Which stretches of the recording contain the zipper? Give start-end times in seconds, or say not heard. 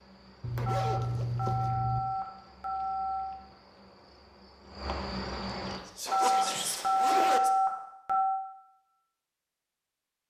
0.4-2.0, 6.0-7.4.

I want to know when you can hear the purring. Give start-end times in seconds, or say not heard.
not heard.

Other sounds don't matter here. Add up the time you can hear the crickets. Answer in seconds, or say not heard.
6 s.